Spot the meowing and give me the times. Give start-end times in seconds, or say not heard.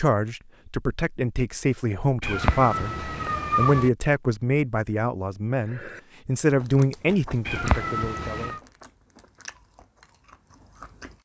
2.2-3.9, 7.5-8.6.